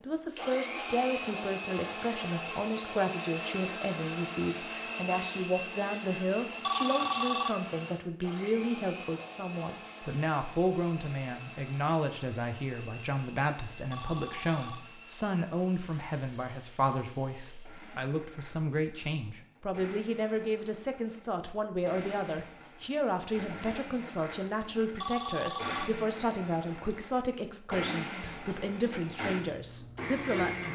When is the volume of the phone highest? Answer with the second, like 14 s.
7 s.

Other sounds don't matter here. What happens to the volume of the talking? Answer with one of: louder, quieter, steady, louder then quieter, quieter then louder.
steady.